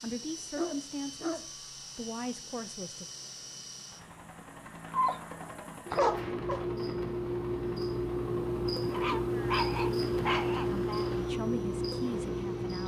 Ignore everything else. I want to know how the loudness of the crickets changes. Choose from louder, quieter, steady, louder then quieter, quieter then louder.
louder.